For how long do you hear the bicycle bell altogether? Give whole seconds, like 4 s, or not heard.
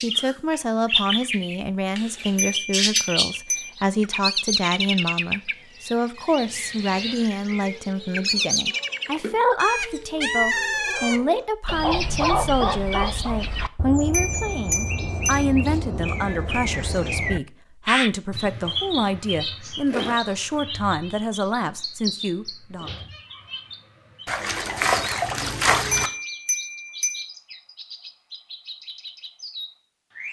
4 s.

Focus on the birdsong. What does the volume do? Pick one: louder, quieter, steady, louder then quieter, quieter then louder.
quieter.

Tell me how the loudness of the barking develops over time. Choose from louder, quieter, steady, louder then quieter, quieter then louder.
louder.